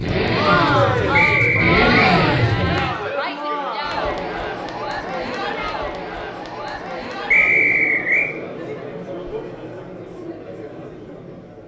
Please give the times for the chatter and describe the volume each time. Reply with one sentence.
You can hear the chatter from 0.1 to 11.6 s, getting quieter.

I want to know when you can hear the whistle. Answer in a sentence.
You can hear the whistle from 1.1 to 2.1 s and from 7.3 to 8.3 s.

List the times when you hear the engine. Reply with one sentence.
The engine can be heard from 0.0 to 3.0 s.